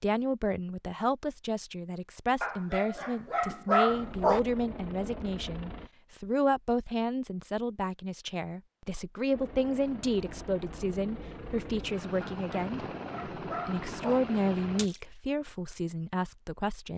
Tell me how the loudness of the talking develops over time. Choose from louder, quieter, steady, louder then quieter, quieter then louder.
steady.